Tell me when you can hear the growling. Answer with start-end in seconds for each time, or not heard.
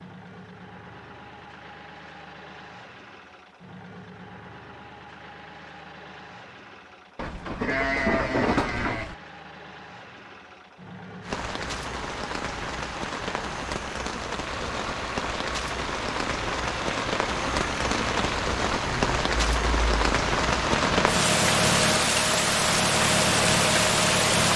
not heard.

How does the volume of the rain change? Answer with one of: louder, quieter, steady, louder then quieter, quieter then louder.
louder.